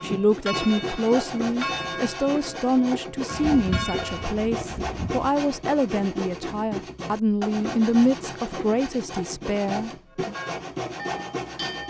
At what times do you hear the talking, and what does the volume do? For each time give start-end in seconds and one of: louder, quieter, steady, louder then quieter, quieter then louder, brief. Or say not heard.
0.0-10.3 steady.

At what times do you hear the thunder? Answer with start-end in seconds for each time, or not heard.
3.3-5.3.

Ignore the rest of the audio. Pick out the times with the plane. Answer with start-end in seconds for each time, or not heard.
not heard.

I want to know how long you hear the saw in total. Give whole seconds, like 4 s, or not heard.
12 s.